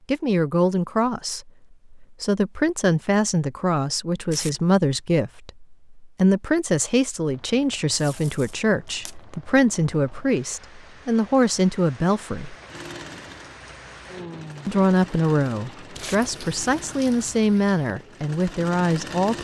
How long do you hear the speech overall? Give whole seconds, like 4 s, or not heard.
17 s.